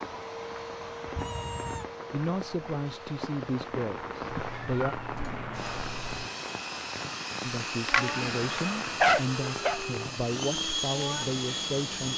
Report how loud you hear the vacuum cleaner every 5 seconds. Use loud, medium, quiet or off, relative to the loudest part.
medium, loud, loud.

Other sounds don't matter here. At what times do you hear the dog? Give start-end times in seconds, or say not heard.
7.9-9.8.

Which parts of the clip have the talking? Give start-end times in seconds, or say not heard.
2.1-5.0, 7.4-12.1.